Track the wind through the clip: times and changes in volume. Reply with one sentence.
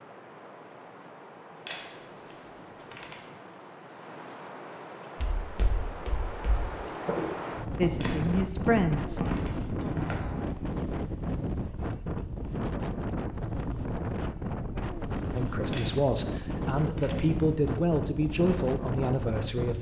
You can hear the wind from 0.0 to 19.7 s, getting louder.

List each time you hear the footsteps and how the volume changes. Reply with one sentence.
You can hear the footsteps from 5.2 to 10.5 s, getting louder.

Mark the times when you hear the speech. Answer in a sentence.
The speech can be heard from 7.8 to 9.2 s and from 15.3 to 19.7 s.